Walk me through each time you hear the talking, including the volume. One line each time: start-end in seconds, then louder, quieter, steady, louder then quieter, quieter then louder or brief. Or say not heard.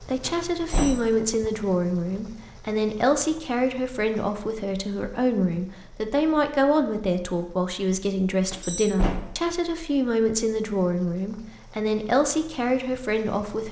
0.0-13.6 steady.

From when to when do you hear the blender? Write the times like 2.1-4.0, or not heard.
not heard.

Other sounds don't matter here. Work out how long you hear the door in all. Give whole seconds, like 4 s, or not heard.
2 s.